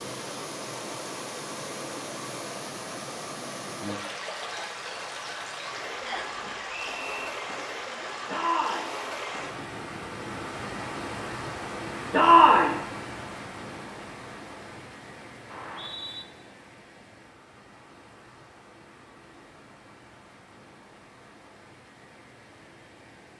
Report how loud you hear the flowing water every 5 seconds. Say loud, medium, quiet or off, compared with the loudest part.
loud, loud, loud, quiet, quiet.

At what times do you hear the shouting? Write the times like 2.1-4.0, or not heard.
8.2-8.9, 12.1-12.8.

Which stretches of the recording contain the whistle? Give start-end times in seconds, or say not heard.
6.0-7.3, 15.5-16.2.